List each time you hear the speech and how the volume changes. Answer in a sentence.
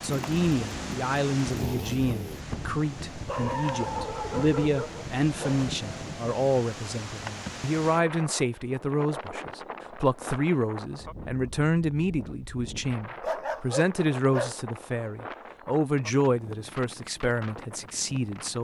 The speech can be heard from 0.0 to 18.5 s, at a steady volume.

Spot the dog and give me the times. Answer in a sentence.
You can hear the dog from 3.2 to 5.8 s and from 13.0 to 14.6 s.